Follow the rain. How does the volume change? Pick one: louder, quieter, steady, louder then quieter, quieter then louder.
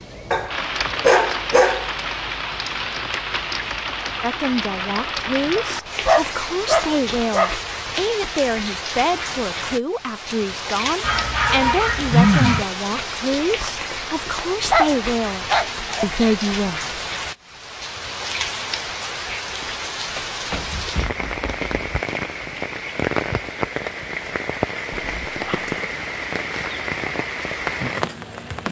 steady.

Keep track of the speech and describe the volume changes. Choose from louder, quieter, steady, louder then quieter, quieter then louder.
steady.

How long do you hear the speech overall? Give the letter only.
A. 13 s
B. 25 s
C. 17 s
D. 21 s
A.